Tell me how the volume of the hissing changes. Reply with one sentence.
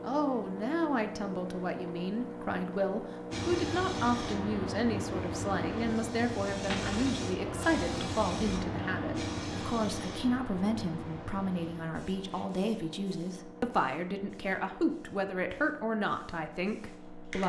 The loudness of the hissing goes down.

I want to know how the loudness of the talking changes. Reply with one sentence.
The volume of the talking stays about the same.